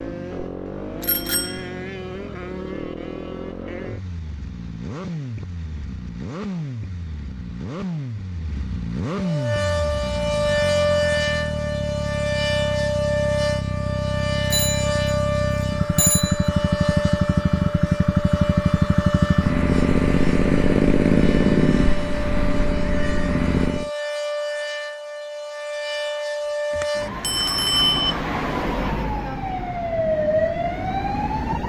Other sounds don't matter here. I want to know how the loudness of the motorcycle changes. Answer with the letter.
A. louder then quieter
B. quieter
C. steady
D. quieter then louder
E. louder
E.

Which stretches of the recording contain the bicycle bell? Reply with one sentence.
The bicycle bell can be heard from 1.0 to 1.6 s, from 14.5 to 15.2 s, from 15.9 to 16.5 s and from 26.7 to 28.1 s.